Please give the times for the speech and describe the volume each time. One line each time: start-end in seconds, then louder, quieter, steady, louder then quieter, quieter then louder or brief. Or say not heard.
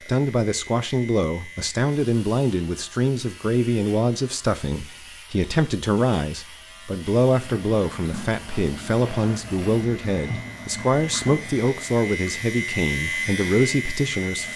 0.1-14.5 steady.